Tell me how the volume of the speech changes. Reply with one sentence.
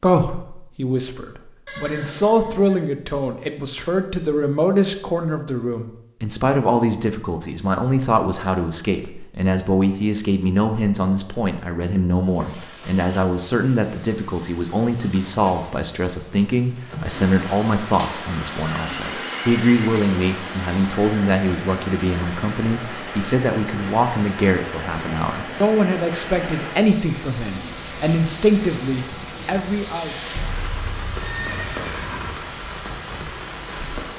The loudness of the speech stays about the same.